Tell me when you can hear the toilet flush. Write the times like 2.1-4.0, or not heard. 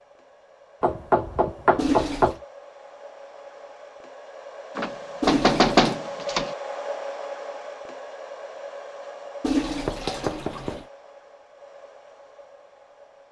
1.8-2.4, 5.2-6.0, 9.4-10.8.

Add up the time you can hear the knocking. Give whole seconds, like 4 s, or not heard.
4 s.